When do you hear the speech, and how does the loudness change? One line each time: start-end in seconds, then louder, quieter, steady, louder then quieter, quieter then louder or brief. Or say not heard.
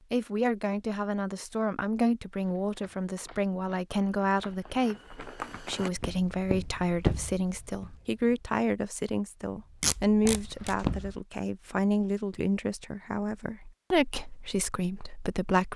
0.1-15.7 steady.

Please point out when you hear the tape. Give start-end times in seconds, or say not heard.
9.8-10.8.